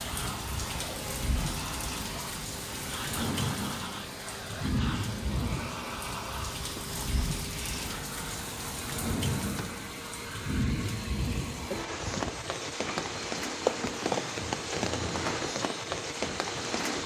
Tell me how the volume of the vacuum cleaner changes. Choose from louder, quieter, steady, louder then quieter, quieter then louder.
steady.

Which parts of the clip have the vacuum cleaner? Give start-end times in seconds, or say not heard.
0.0-17.0.